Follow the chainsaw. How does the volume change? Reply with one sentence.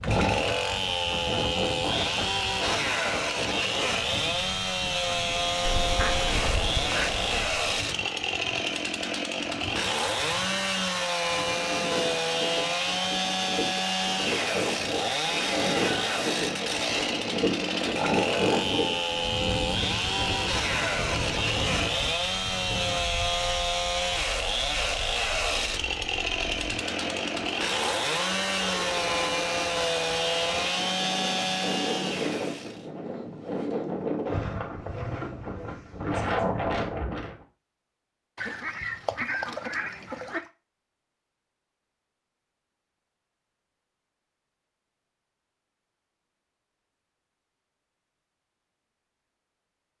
The loudness of the chainsaw stays about the same.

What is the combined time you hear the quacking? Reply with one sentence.
The quacking can be heard for 4 seconds in total.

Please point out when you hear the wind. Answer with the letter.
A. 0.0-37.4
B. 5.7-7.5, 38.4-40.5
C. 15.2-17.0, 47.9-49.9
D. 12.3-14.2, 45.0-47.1
A.